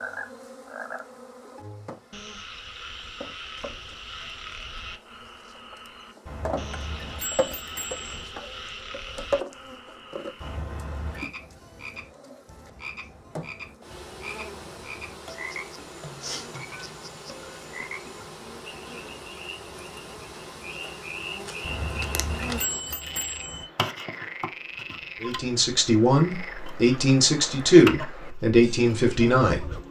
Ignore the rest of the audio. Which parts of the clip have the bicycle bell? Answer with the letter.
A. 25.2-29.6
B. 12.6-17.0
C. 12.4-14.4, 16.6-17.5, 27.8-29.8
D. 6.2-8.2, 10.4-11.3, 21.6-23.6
D.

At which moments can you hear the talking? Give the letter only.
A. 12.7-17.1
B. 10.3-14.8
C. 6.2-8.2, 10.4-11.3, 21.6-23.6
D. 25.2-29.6
D.